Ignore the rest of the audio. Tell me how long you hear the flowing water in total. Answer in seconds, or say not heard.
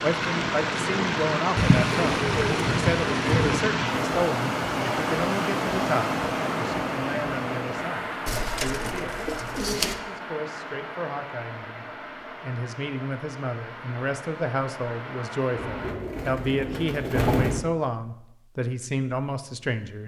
16 s.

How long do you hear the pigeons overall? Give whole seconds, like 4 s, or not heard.
6 s.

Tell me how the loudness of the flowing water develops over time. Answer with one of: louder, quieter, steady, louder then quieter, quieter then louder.
quieter.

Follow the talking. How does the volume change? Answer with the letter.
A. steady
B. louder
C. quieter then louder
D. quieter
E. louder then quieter
C.